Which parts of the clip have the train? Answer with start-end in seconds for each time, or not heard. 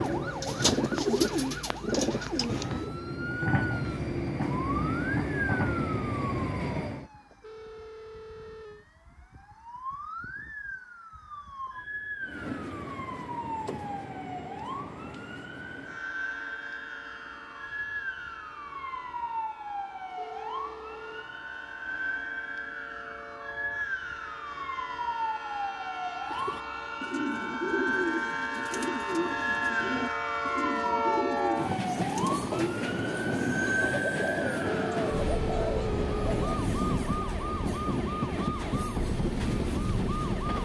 0.0-7.1, 12.2-40.6.